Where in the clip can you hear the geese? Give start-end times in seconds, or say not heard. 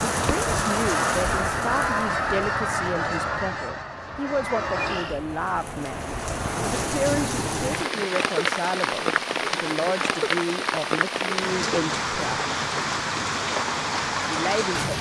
0.0-5.2.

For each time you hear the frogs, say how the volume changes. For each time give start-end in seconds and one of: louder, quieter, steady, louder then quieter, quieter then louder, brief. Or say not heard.
not heard.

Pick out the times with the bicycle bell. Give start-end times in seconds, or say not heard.
not heard.